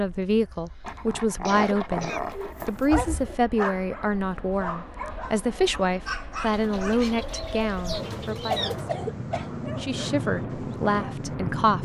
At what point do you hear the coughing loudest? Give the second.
9 s.